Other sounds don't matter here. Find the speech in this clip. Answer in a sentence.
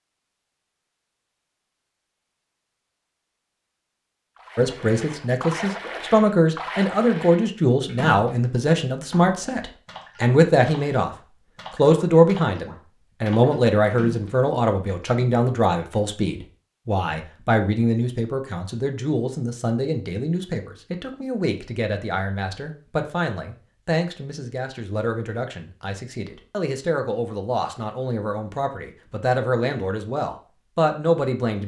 You can hear the speech from 4.5 to 31.6 s.